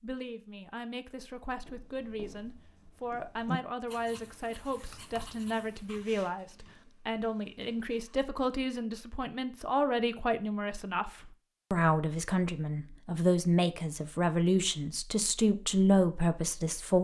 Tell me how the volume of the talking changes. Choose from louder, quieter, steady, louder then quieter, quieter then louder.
louder.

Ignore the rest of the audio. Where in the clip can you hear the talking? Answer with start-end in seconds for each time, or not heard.
0.0-16.9.